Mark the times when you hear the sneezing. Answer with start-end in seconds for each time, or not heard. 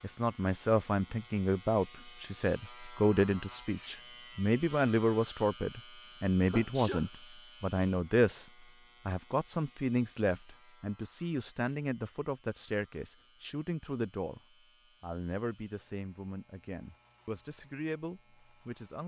6.5-7.0.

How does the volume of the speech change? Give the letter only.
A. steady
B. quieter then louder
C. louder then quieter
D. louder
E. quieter
E.